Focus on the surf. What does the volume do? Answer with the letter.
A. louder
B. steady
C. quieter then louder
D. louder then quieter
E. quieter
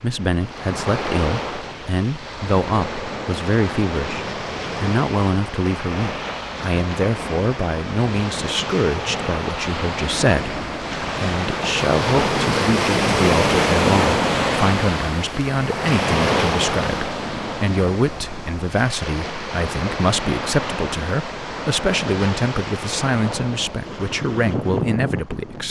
D.